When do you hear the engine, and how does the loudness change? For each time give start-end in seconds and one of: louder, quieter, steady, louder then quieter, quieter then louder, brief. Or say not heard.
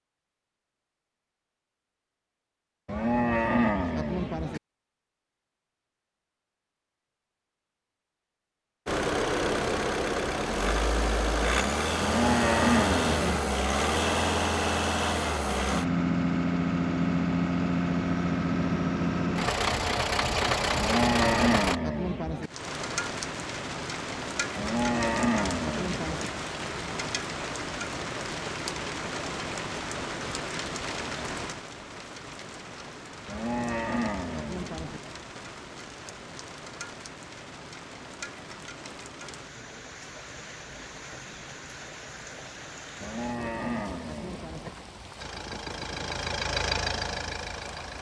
8.8-21.8 steady
45.1-47.9 brief.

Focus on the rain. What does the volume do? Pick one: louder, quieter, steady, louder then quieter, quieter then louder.
quieter.